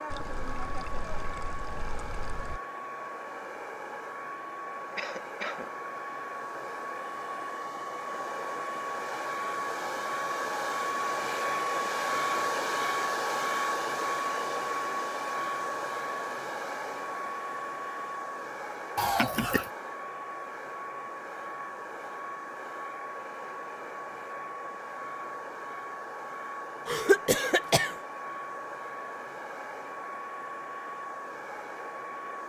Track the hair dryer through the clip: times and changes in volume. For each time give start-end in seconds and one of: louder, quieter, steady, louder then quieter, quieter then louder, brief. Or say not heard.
0.0-32.4 louder then quieter.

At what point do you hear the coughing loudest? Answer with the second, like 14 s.
27 s.